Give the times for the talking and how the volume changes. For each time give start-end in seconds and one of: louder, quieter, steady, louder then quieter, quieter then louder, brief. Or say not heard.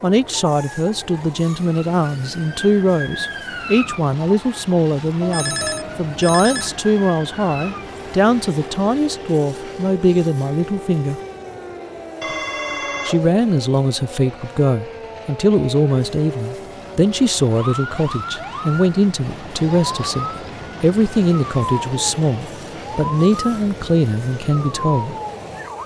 0.0-11.2 steady
13.1-25.1 steady.